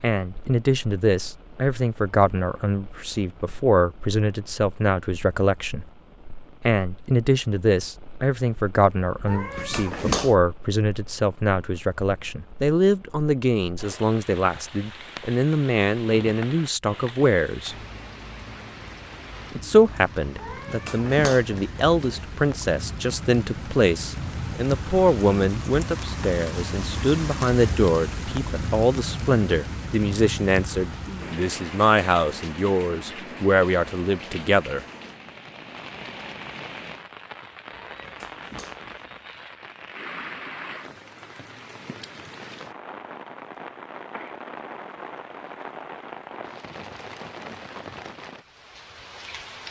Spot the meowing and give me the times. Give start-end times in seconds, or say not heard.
9.2-10.3, 20.4-22.2, 37.8-39.2.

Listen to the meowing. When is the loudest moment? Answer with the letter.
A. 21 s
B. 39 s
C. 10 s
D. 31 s
C.